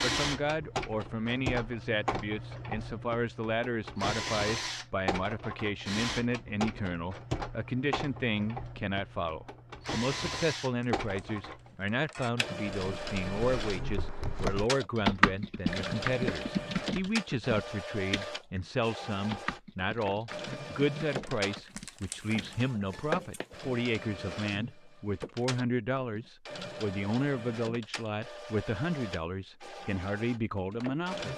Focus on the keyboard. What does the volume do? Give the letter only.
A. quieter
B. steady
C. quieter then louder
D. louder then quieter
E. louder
A.